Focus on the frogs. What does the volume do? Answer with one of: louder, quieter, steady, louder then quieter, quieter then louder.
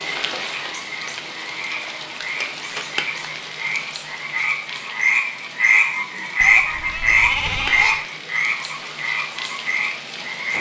louder then quieter.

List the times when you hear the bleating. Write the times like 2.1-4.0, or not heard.
6.4-8.1.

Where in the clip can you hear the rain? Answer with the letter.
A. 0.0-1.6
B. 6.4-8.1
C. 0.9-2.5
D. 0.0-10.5
D.